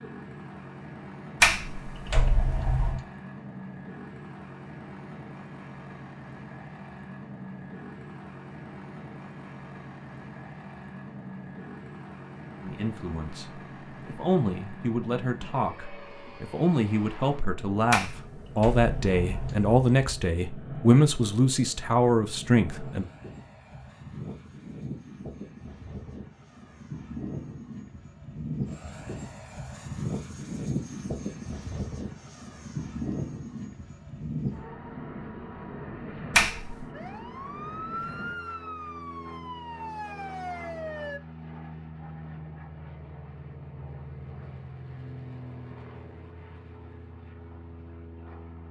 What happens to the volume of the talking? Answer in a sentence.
The loudness of the talking goes up.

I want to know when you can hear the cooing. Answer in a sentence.
The cooing can't be heard in this clip.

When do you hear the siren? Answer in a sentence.
You can hear the siren from 36.9 to 41.2 s.